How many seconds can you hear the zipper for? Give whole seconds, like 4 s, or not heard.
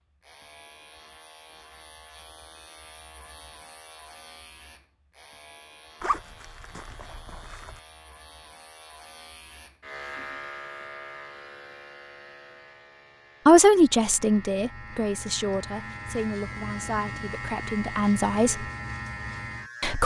2 s.